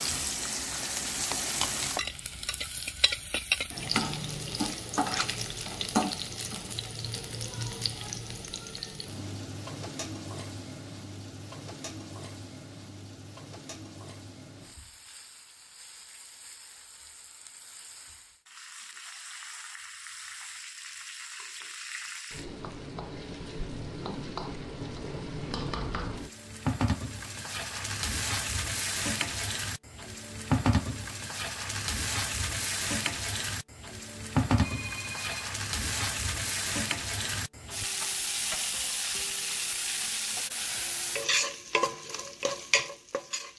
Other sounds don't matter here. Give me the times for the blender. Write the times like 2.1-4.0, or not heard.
not heard.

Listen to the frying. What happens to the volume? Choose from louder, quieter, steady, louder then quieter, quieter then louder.
quieter then louder.